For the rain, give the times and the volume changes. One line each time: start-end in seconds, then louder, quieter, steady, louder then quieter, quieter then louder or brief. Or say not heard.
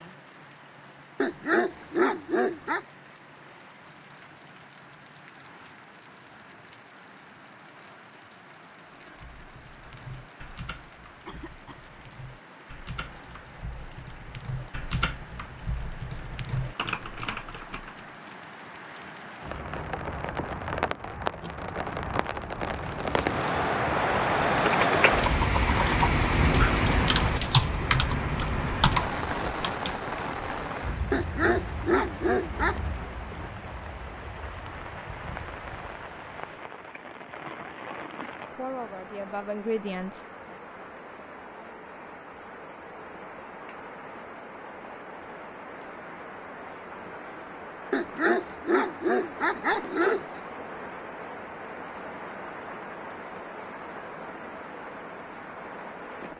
0.0-56.3 louder then quieter.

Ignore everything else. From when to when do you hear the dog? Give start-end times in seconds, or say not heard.
1.2-2.9, 31.1-32.8, 47.9-50.4.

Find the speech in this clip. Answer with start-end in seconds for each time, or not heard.
38.5-40.2.